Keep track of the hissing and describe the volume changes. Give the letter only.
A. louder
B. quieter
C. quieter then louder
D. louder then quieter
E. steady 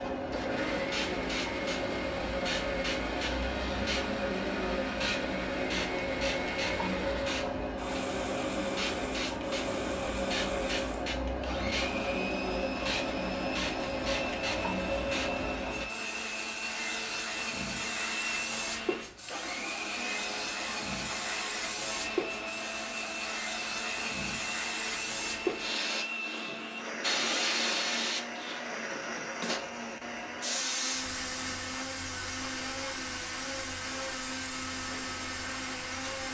B.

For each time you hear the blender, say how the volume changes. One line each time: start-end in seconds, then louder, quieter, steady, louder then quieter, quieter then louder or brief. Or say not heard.
0.1-36.3 steady.